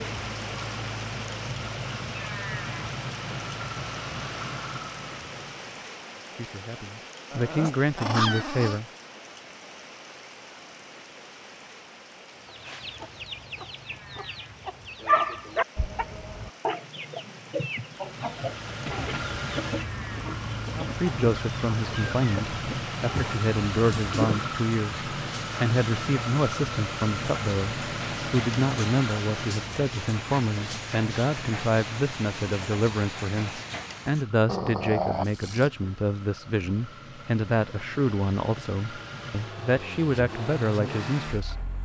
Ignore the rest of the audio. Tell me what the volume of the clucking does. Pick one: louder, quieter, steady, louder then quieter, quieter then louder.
louder then quieter.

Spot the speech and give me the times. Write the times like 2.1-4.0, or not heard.
6.3-8.8, 20.8-41.7.